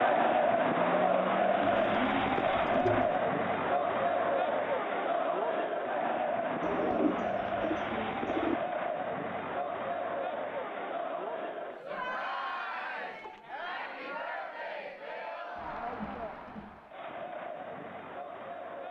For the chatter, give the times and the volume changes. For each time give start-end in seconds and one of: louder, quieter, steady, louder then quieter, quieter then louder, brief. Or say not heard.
0.0-18.8 quieter.